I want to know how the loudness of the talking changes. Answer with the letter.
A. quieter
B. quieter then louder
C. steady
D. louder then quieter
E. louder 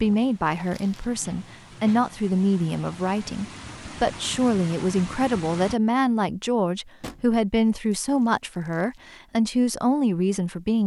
C.